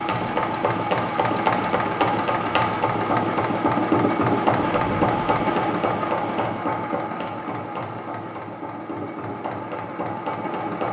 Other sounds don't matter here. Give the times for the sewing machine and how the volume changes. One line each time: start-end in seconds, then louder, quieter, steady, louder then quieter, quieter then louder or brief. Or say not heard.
0.0-10.8 quieter.